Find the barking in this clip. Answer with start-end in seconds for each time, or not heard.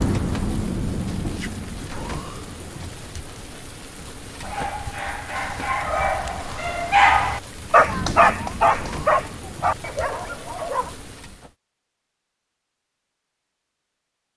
4.4-10.9.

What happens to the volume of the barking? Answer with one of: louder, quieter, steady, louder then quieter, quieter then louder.
louder then quieter.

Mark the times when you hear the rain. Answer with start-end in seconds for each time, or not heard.
0.0-11.5.